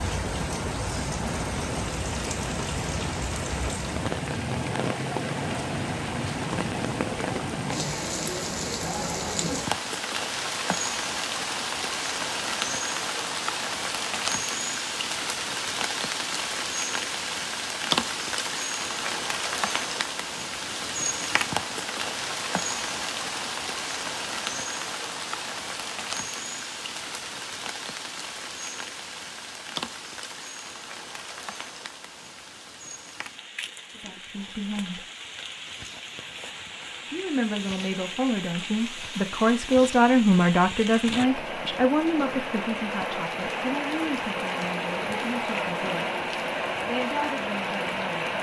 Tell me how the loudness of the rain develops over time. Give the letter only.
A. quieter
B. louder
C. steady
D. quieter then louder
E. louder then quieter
D.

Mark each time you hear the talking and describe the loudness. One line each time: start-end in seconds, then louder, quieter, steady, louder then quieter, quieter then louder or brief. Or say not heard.
34.0-35.0 brief
37.1-46.1 louder then quieter
46.8-48.3 brief.